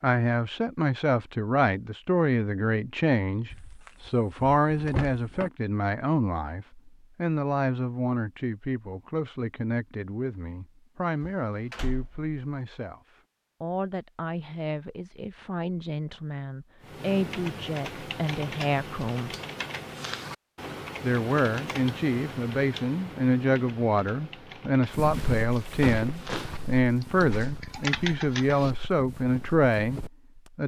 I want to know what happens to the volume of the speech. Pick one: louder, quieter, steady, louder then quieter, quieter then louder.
quieter then louder.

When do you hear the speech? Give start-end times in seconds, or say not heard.
0.0-13.0, 13.6-19.4, 21.0-30.6.